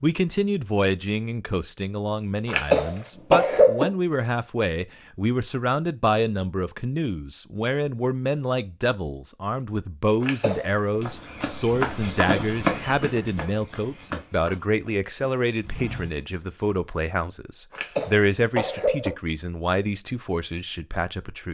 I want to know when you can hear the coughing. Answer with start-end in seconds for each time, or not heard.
2.5-3.9, 10.2-10.7, 17.8-19.1.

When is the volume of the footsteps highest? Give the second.
13 s.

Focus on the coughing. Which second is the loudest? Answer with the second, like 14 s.
3 s.